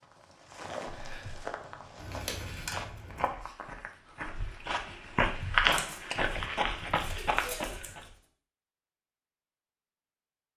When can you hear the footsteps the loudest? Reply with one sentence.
The loudest moment of the footsteps is at 6 seconds.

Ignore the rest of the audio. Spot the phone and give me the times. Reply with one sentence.
You can't hear the phone here.